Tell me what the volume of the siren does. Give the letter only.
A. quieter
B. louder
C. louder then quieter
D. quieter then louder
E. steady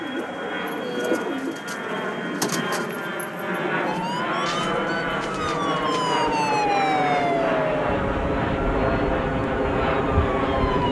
C.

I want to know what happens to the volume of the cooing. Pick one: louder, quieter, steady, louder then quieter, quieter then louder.
quieter.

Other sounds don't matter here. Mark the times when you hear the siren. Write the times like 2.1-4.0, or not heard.
3.9-10.8.